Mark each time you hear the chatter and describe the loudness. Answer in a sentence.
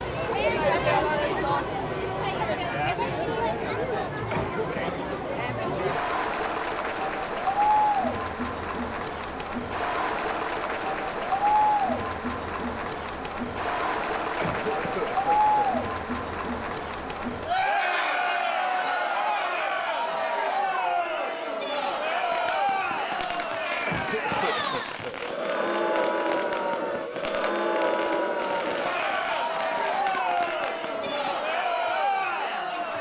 You can hear the chatter from 0.0 to 32.9 s, at a steady volume.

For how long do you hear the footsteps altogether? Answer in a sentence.
The footsteps can't be heard in this clip.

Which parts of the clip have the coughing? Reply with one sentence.
The coughing can be heard from 4.3 to 5.0 s, from 14.3 to 15.8 s and from 23.9 to 25.2 s.